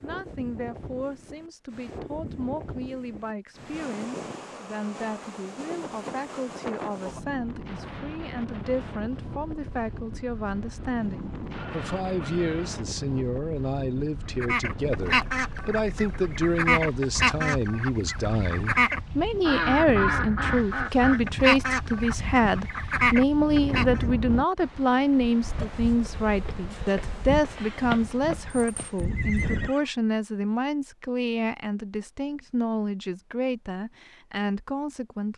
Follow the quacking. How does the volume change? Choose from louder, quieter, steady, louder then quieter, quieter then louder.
steady.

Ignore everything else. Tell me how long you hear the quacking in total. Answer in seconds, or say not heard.
10 s.